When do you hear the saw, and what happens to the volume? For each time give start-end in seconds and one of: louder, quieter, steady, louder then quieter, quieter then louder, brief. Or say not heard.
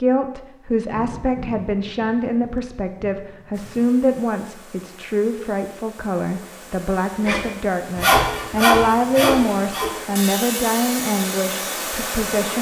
7.2-12.2 quieter.